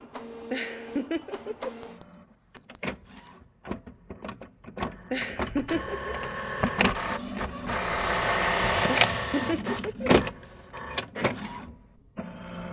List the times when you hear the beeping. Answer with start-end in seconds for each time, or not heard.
1.8-2.9.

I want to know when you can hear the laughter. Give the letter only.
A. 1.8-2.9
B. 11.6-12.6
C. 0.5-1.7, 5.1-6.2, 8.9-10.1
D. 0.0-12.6
C.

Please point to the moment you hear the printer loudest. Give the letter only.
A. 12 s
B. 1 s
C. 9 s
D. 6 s
C.